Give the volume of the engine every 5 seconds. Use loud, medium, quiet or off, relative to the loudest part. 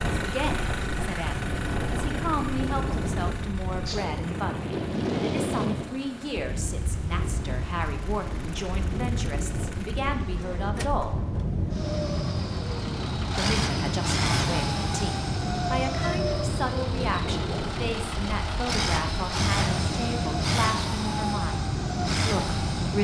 medium, quiet, loud, loud, loud.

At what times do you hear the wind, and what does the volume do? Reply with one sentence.
You can hear the wind from 0.0 to 22.9 s, at a steady volume.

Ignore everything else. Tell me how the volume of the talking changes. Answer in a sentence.
The volume of the talking stays about the same.